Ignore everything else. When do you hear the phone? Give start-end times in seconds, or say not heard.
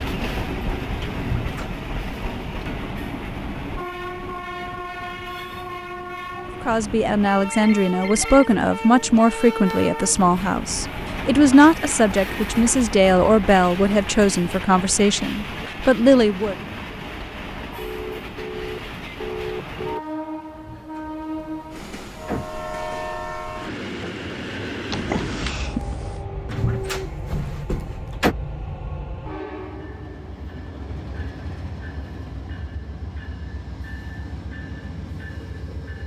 7.5-8.6, 17.8-20.0, 24.9-26.2.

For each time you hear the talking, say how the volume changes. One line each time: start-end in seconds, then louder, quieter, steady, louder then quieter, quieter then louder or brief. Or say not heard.
6.6-16.6 steady.